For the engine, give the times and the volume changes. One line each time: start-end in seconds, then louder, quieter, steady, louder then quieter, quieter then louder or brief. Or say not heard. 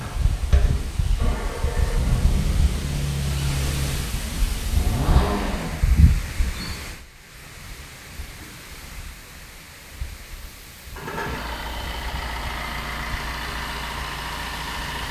0.0-5.8 louder
10.9-15.0 steady.